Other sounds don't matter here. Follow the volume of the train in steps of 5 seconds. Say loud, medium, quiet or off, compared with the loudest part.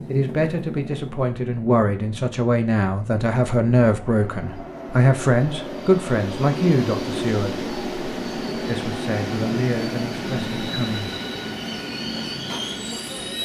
medium, loud, loud.